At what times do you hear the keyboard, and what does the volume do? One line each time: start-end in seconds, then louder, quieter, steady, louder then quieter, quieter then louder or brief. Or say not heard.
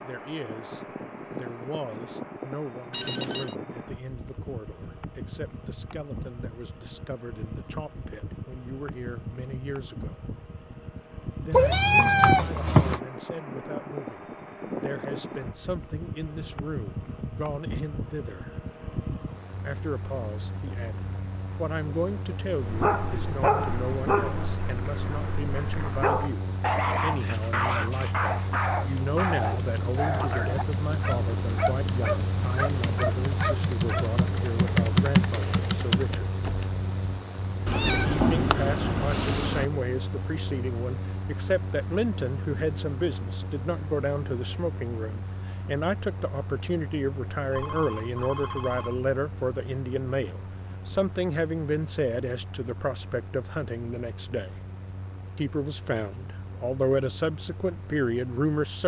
28.9-36.7 louder.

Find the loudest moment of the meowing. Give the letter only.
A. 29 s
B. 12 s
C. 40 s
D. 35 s
B.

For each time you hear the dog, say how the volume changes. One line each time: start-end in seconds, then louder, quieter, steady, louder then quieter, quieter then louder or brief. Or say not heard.
22.6-34.1 steady.